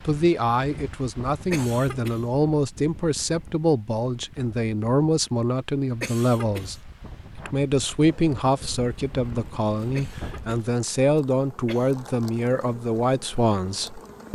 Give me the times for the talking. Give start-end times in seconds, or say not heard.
0.1-14.3.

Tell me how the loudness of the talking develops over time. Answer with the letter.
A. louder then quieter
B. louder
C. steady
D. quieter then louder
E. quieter
C.